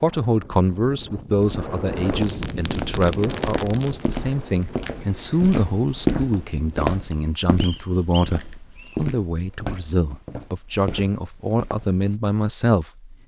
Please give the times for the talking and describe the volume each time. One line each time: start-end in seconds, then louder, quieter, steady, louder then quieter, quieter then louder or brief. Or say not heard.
0.0-13.2 steady.